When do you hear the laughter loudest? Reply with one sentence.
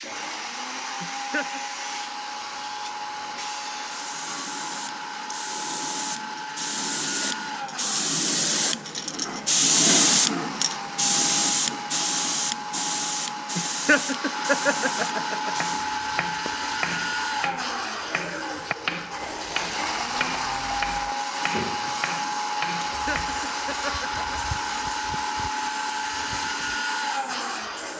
The loudest moment of the laughter is at 14 seconds.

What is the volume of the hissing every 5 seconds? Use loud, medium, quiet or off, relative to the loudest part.
quiet, loud, loud, quiet, quiet, quiet.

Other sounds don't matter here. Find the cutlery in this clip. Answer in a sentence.
You can't hear the cutlery here.